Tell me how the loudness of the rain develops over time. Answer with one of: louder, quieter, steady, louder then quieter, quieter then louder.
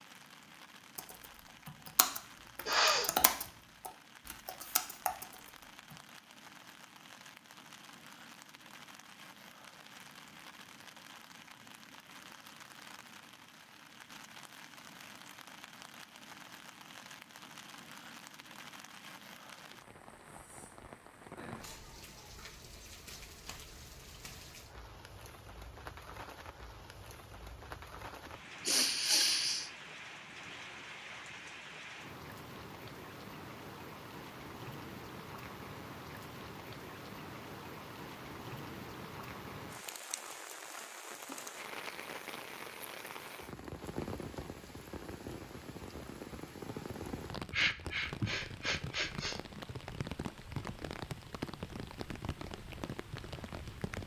louder.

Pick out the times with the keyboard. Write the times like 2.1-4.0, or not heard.
0.9-6.0.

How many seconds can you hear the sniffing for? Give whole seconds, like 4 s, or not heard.
4 s.